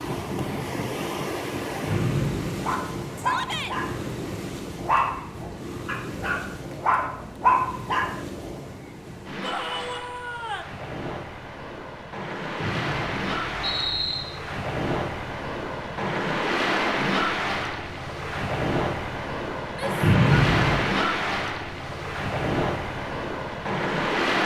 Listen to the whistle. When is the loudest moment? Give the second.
20 s.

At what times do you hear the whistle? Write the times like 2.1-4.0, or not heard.
1.9-2.6, 12.6-14.2, 20.0-20.9.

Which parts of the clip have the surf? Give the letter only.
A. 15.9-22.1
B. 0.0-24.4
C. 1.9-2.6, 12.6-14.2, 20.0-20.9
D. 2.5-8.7
B.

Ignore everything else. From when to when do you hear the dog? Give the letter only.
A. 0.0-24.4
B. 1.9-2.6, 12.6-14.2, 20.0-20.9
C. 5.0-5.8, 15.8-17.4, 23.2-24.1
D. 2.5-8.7
D.